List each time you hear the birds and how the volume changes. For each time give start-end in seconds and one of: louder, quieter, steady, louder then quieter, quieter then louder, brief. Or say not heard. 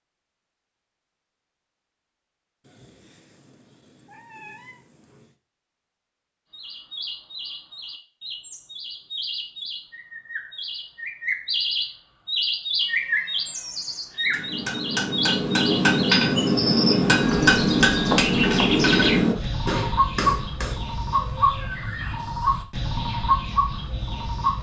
6.5-24.5 louder.